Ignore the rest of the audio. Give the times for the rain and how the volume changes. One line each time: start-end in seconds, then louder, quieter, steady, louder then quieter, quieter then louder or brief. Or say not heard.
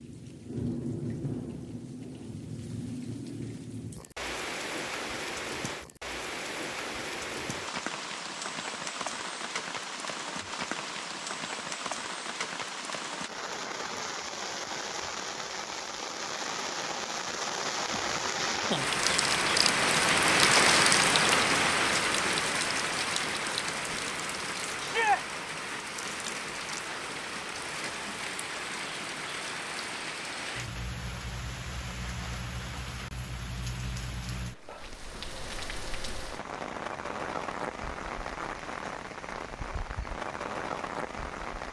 0.0-41.6 louder then quieter.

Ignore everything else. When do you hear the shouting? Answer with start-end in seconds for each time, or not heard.
24.8-25.2.